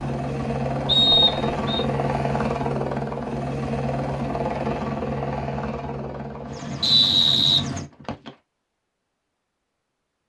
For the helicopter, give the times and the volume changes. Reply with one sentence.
You can hear the helicopter from 0.0 to 7.9 s, getting quieter.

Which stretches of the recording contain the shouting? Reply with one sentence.
You can't hear the shouting here.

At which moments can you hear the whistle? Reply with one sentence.
The whistle can be heard from 0.8 to 1.9 s and from 6.8 to 8.3 s.